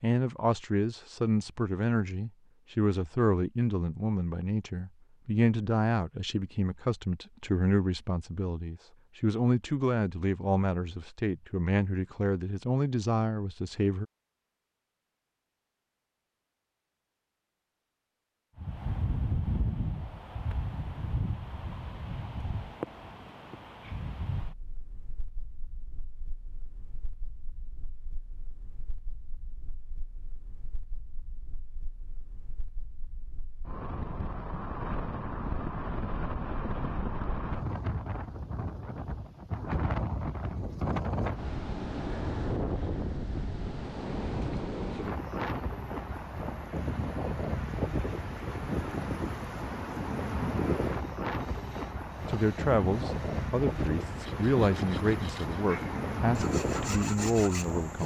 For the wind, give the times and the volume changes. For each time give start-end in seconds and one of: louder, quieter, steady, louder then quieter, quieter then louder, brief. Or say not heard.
18.6-58.0 quieter then louder.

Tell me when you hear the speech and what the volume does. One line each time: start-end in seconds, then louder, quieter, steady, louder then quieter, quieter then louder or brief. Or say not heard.
0.0-14.1 steady
52.2-58.0 steady.